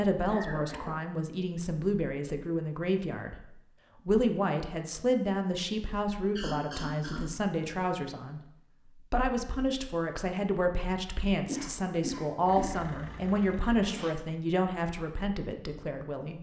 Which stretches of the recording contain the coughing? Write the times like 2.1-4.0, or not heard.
0.2-1.0, 6.3-7.2, 11.4-12.8.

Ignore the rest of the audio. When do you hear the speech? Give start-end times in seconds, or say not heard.
0.0-16.3.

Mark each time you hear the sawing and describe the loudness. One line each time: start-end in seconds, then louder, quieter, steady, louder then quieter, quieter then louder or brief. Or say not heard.
not heard.